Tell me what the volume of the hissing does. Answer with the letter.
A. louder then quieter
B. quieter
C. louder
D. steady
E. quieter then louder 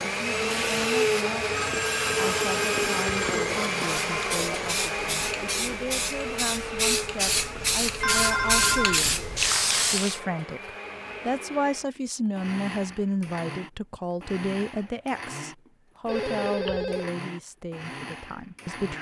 C.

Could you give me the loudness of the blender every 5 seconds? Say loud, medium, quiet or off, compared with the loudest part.
loud, medium, quiet, quiet.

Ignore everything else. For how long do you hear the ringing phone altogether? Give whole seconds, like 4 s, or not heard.
5 s.